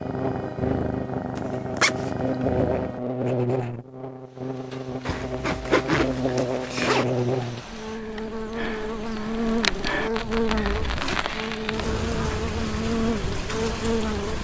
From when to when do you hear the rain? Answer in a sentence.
You can hear the rain from 4.2 to 14.4 s.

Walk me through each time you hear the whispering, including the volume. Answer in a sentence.
You can't hear the whispering here.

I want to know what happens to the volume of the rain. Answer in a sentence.
The loudness of the rain goes up.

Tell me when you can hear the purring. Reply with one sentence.
You can hear the purring from 0.0 to 3.0 s.